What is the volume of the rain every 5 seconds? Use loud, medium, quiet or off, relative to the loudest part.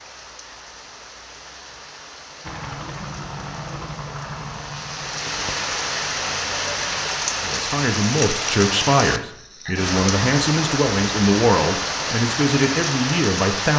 quiet, loud, loud.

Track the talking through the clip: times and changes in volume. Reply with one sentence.
You can hear the talking from 7.4 to 13.7 s, at a steady volume.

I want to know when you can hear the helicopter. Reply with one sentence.
You can hear the helicopter from 2.4 to 7.3 s.